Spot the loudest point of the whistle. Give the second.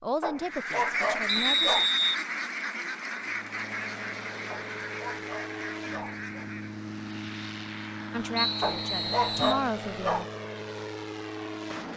2 s.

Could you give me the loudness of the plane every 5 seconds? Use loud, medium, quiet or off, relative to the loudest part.
medium, loud, loud.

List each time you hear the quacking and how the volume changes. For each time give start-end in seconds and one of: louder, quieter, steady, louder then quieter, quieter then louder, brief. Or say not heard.
0.3-7.0 quieter.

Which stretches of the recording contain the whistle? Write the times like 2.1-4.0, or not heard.
1.2-2.1, 8.3-9.7.